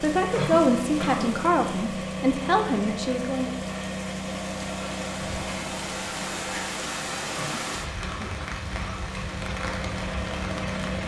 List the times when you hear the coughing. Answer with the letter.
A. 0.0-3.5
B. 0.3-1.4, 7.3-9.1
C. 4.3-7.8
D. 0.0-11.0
B.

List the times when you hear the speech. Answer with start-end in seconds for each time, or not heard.
0.0-3.5.